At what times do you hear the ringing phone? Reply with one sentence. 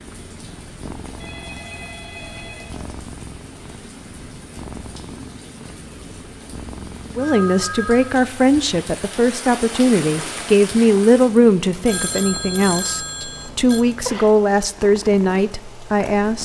The ringing phone can be heard from 1.2 to 2.9 s, from 7.2 to 8.2 s and from 11.8 to 13.8 s.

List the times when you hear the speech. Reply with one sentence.
You can hear the speech from 7.2 to 16.3 s.